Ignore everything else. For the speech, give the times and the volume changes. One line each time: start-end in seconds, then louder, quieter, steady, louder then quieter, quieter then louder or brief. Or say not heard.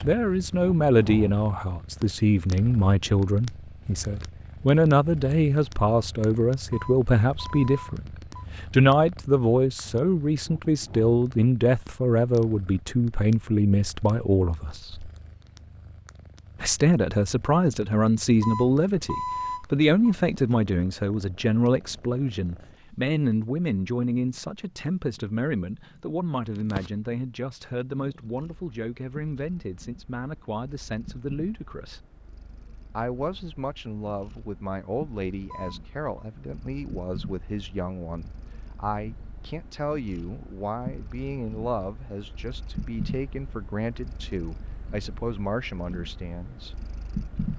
0.0-15.1 steady
16.6-32.0 quieter
33.0-46.8 steady.